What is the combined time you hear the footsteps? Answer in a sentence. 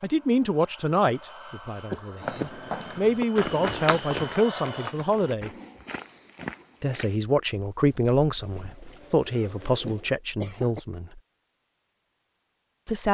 The footsteps can be heard for 7 seconds in total.